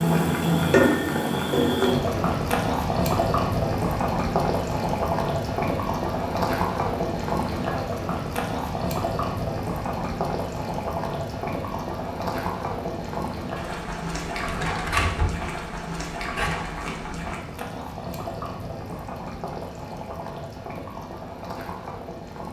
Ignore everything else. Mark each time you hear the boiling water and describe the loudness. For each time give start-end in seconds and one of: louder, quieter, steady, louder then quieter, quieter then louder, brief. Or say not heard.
0.0-22.4 quieter.